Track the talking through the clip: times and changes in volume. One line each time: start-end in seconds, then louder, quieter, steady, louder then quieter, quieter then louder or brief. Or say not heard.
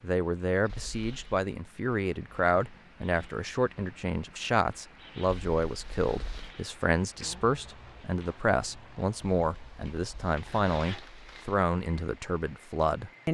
0.0-13.2 steady.